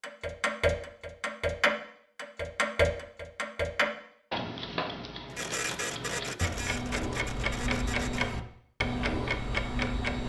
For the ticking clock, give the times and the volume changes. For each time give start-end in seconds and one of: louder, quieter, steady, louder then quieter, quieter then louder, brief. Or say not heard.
0.0-10.2 quieter then louder.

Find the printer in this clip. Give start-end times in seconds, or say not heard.
5.3-8.4.